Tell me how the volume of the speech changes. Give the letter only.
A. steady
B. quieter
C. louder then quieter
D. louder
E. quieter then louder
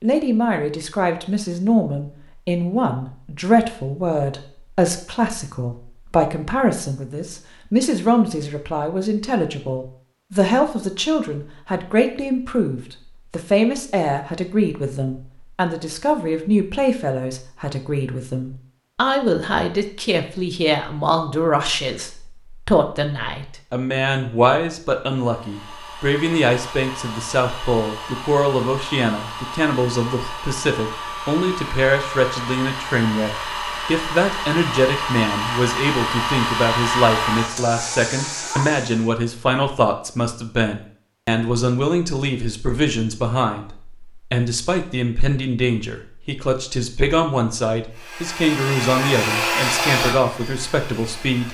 A.